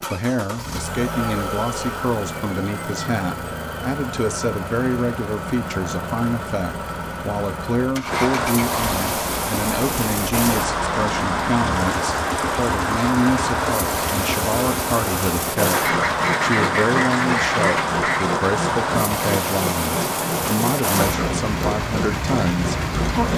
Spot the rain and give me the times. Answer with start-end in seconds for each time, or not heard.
8.1-23.3.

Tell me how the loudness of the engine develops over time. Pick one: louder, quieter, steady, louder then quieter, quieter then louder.
steady.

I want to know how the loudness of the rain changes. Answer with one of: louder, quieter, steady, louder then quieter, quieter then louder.
steady.